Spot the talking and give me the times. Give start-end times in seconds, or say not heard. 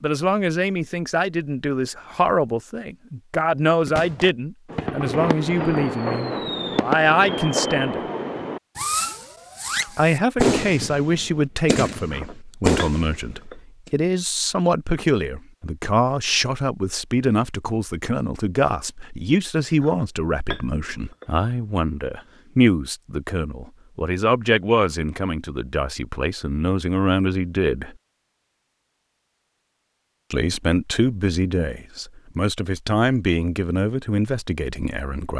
0.0-8.0, 9.8-27.9, 30.3-35.3.